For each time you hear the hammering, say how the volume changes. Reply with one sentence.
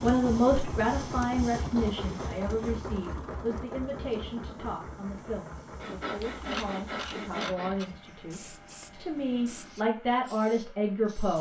The hammering can't be heard in this clip.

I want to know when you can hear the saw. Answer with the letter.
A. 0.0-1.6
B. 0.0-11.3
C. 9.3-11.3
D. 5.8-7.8
D.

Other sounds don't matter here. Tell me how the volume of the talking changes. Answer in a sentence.
The loudness of the talking goes down, then up.